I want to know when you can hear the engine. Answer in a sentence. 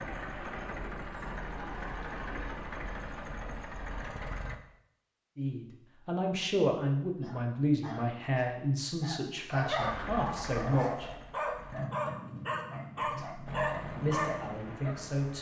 You can hear the engine from 0.0 to 4.5 s, from 9.8 to 11.9 s and from 13.4 to 15.3 s.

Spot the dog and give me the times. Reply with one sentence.
The dog can be heard from 9.5 to 15.1 s.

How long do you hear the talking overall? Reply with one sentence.
You can hear the talking for 8 seconds altogether.